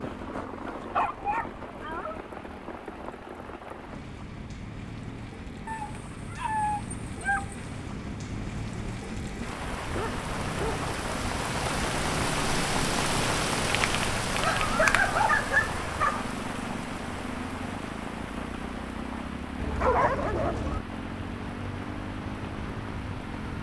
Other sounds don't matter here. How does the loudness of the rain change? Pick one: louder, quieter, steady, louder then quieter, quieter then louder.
louder then quieter.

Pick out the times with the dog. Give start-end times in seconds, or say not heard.
0.7-2.2, 5.7-7.6, 9.9-10.8, 14.4-16.2, 19.6-20.8.